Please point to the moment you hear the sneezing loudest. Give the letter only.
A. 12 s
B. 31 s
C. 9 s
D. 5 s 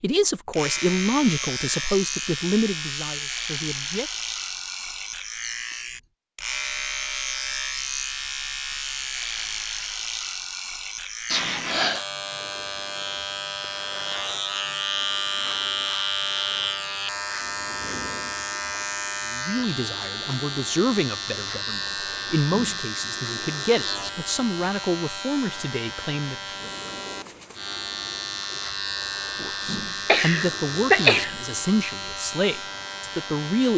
B.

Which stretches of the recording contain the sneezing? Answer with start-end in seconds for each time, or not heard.
11.3-12.1, 30.1-31.3.